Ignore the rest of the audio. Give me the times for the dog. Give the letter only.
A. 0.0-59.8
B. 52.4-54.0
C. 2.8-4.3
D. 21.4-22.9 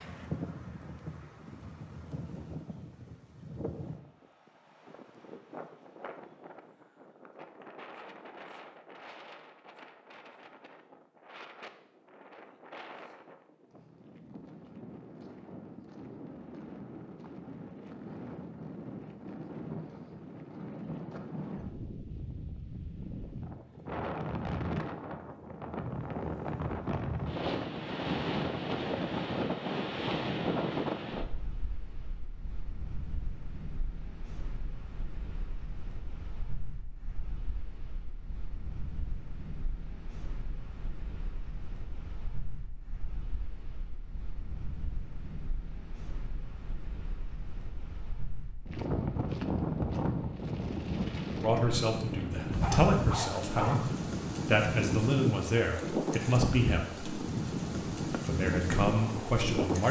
B.